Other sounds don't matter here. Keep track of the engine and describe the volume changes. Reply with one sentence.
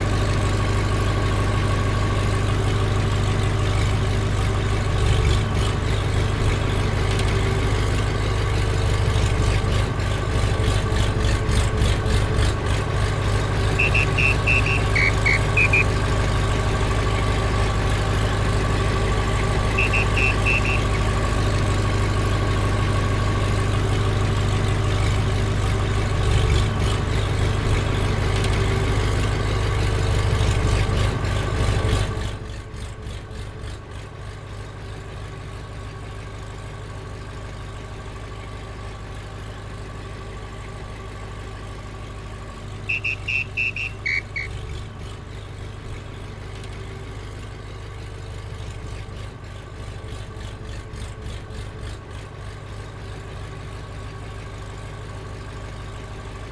The volume of the engine goes down.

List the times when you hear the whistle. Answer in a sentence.
The whistle can be heard from 13.8 to 15.8 s, from 19.8 to 20.8 s and from 42.9 to 44.5 s.